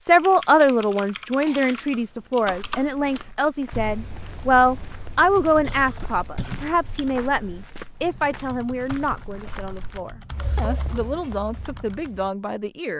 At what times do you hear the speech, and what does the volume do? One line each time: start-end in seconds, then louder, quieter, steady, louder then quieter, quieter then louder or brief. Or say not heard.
0.0-12.9 quieter.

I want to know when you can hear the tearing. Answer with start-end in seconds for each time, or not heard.
not heard.